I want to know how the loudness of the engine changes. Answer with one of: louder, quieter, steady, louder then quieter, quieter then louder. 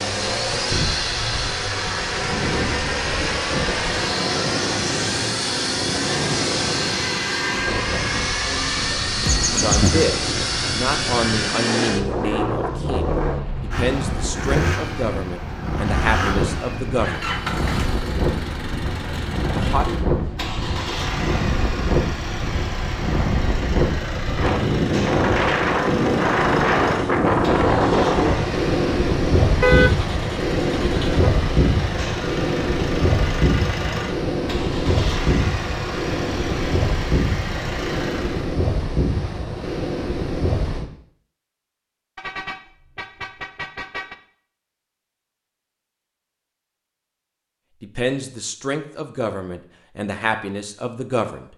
quieter.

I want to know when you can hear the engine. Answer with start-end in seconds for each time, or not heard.
0.0-38.5.